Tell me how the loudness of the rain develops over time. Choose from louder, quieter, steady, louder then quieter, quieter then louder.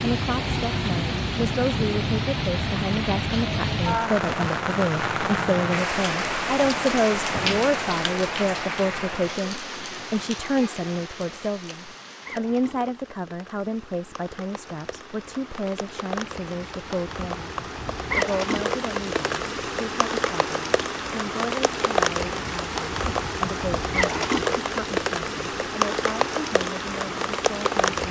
quieter then louder.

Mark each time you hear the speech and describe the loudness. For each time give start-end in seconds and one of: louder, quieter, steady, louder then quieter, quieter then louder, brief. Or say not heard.
0.0-28.0 quieter.